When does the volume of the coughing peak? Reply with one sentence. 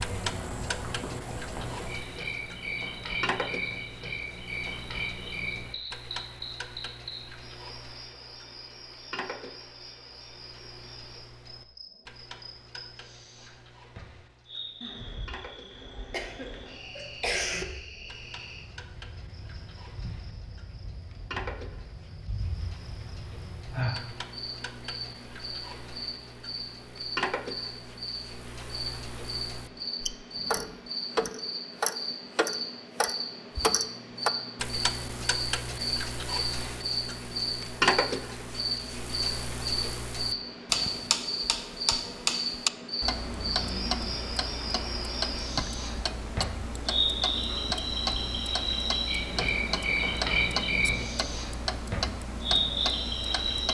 The loudest moment of the coughing is at 17 seconds.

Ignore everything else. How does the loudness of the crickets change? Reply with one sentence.
The loudness of the crickets goes down, then up.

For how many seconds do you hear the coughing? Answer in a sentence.
You can hear the coughing for 2 seconds altogether.